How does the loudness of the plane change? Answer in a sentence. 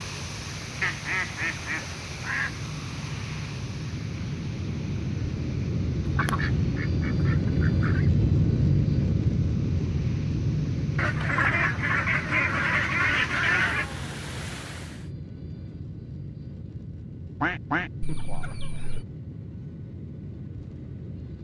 The loudness of the plane goes up, then down.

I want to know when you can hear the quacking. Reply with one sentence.
You can hear the quacking from 0.8 to 2.5 s, from 6.0 to 8.1 s, from 10.9 to 13.8 s and from 17.4 to 19.1 s.